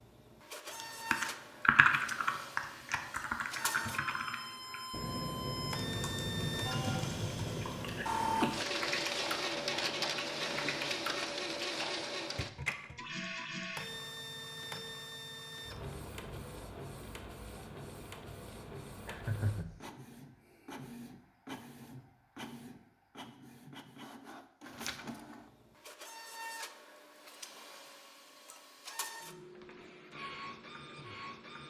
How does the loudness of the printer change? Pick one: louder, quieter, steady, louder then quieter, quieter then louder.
louder then quieter.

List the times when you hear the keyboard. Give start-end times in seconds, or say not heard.
0.8-12.1.